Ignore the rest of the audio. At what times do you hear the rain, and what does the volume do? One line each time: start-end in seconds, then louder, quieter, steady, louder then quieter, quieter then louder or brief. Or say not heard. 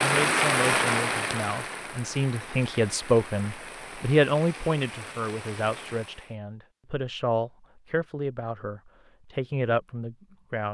0.0-6.3 quieter.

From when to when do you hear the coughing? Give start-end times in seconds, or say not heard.
not heard.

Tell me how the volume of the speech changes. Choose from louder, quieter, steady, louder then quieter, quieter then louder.
louder then quieter.